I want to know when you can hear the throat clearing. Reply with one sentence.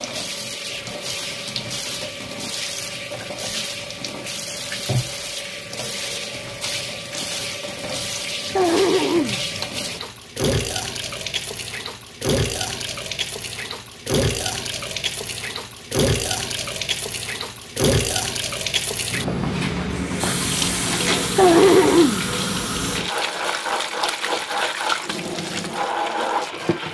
The throat clearing can be heard from 8.6 to 9.4 s and from 21.4 to 22.2 s.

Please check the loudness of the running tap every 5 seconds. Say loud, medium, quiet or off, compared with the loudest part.
medium, medium, loud, loud, loud, loud.